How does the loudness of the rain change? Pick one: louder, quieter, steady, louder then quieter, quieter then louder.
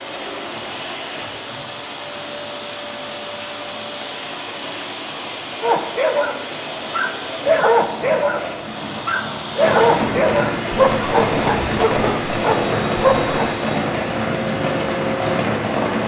louder.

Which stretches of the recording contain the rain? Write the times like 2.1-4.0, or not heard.
0.0-16.0.